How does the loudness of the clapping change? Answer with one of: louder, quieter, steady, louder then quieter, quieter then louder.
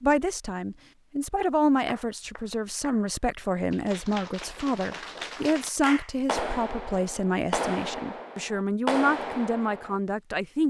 louder.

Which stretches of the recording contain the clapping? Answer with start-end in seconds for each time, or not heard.
1.9-10.0.